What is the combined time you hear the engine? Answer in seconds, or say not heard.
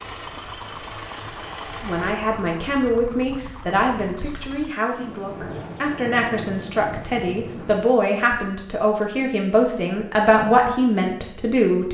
2 s.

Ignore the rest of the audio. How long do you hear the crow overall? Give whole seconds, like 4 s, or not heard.
not heard.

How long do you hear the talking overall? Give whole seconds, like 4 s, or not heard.
10 s.